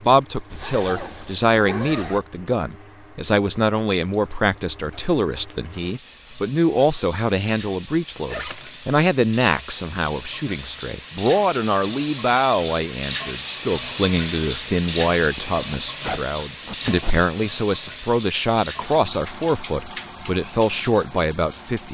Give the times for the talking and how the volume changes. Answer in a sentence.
The talking can be heard from 0.0 to 21.8 s, at a steady volume.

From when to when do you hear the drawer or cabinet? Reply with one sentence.
You can't hear the drawer or cabinet here.